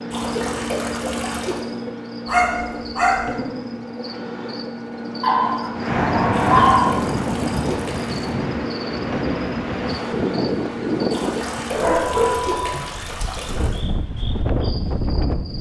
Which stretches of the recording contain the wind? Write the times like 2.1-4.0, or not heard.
5.7-15.5.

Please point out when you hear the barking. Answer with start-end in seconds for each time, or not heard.
2.2-3.3, 5.2-7.0, 11.7-12.9.